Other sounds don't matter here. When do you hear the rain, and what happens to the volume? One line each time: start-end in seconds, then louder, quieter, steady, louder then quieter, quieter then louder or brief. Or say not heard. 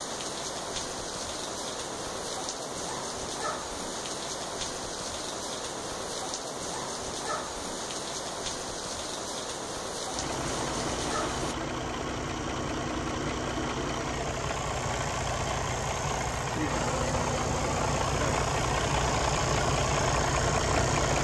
0.0-11.6 steady.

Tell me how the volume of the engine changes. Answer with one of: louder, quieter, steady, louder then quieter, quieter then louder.
louder.